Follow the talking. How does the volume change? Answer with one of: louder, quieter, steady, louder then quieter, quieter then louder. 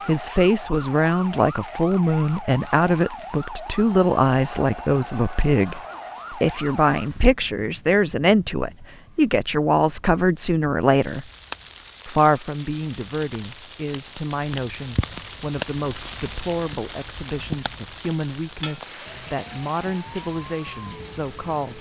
quieter.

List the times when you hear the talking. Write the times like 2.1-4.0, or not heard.
0.1-11.2, 12.1-21.7.